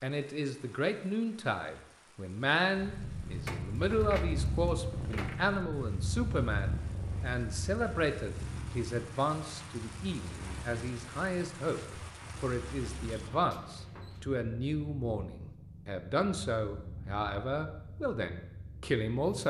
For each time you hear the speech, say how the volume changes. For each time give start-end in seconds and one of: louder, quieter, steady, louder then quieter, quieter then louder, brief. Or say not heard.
0.0-19.4 steady.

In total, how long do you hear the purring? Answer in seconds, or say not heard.
17 s.